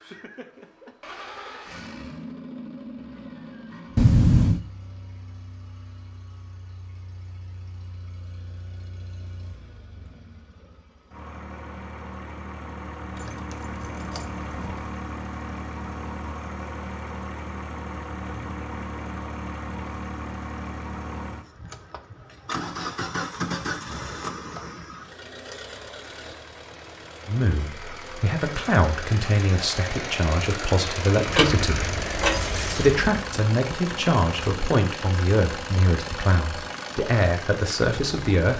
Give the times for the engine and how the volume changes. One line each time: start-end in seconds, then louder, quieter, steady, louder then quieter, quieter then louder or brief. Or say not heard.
0.0-38.5 louder.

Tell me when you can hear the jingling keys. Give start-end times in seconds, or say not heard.
4.0-4.6, 13.2-14.8, 31.2-33.0.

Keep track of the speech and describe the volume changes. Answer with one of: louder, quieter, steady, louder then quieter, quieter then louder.
steady.